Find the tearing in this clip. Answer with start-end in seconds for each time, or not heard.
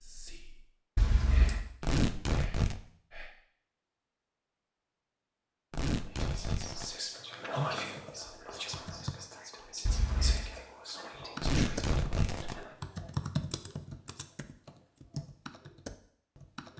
1.8-2.8, 5.7-7.0, 11.4-12.7.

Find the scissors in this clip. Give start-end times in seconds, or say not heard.
0.9-1.6, 9.8-10.5.